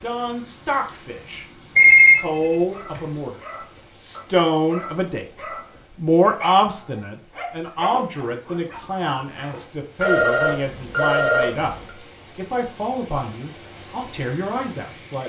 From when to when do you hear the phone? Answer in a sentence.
You can hear the phone from 1.8 to 3.0 s and from 10.0 to 11.9 s.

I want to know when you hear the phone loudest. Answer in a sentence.
The volume of the phone peaks at 2 seconds.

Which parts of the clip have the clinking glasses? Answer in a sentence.
The clinking glasses can't be heard in this clip.